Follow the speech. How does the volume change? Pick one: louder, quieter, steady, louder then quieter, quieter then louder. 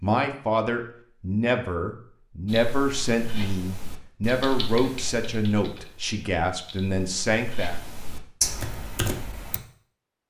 steady.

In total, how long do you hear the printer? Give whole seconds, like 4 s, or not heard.
not heard.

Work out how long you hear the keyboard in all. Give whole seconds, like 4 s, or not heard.
7 s.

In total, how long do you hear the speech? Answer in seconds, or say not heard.
8 s.